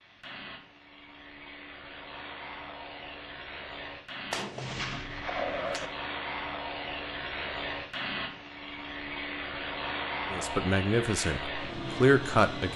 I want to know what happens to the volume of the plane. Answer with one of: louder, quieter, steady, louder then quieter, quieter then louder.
louder.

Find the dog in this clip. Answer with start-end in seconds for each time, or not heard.
not heard.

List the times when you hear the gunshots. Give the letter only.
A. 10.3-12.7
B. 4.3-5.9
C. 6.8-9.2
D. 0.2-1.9
B.